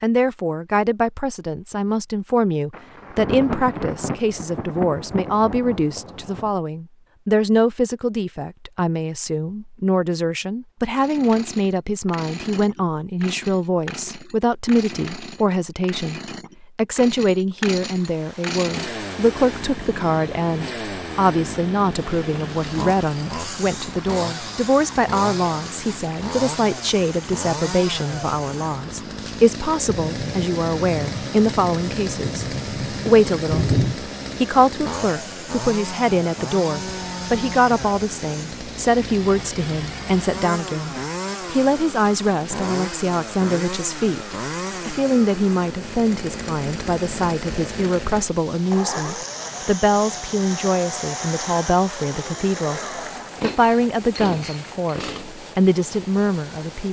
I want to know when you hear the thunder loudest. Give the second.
34 s.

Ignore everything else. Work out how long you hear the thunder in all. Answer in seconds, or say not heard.
8 s.